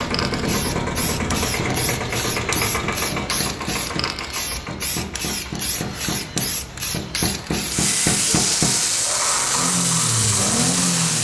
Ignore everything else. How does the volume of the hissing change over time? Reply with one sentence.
The loudness of the hissing goes up.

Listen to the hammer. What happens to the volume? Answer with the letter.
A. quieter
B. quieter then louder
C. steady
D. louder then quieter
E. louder
D.